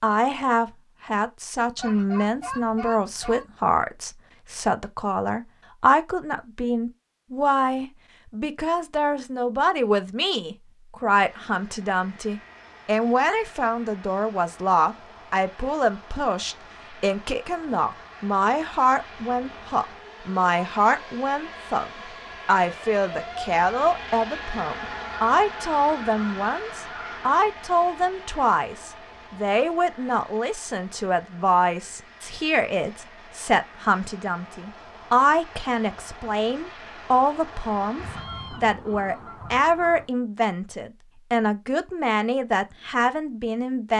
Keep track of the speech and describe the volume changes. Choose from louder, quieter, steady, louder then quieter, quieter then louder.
steady.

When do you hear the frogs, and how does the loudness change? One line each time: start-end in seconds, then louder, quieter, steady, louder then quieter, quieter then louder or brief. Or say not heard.
not heard.